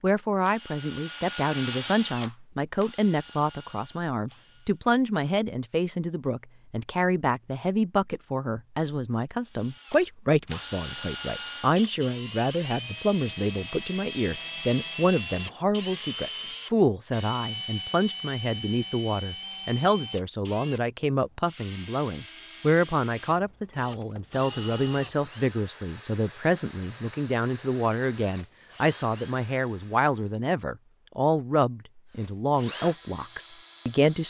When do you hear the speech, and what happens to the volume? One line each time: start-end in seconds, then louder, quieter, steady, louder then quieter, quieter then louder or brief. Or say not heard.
0.0-34.2 steady.